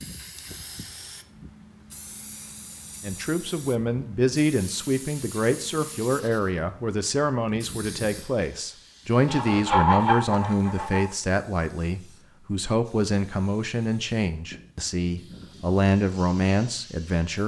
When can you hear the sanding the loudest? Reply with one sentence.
The volume of the sanding peaks at 10 seconds.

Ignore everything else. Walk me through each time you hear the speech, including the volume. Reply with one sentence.
You can hear the speech from 3.0 to 17.4 s, at a steady volume.